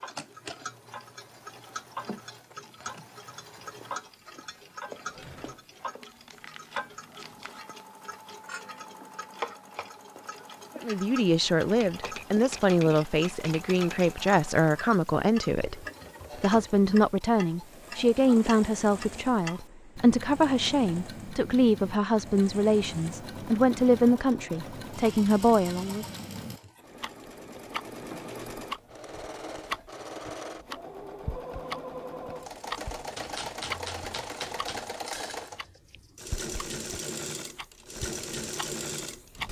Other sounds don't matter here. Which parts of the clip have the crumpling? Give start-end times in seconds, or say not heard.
6.0-7.6.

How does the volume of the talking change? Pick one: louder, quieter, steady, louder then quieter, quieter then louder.
steady.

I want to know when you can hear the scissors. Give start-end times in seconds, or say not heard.
not heard.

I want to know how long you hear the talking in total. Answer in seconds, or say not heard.
15 s.